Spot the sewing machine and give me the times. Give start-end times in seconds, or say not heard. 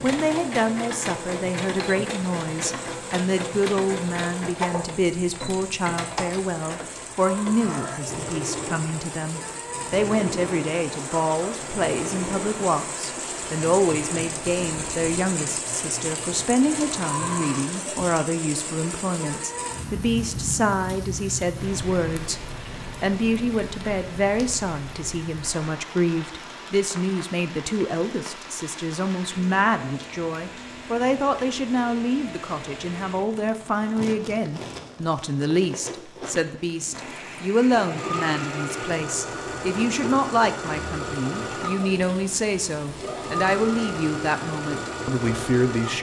0.0-17.5, 36.9-45.9.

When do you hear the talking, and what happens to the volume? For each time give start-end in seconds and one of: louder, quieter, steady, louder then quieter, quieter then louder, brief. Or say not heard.
0.0-22.4 steady
23.0-45.9 steady.